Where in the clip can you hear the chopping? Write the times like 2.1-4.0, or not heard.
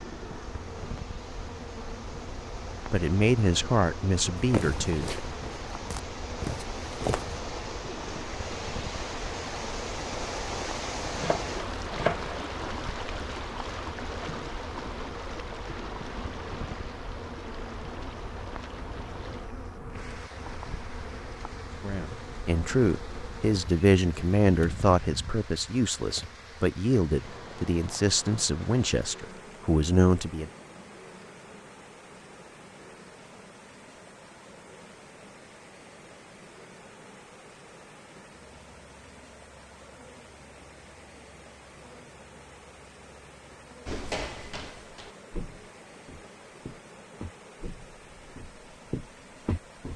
11.2-12.3.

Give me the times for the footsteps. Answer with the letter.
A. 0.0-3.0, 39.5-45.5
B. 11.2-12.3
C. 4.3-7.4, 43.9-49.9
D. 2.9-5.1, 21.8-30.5
C.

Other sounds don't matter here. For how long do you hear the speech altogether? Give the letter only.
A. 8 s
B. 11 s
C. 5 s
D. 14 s
B.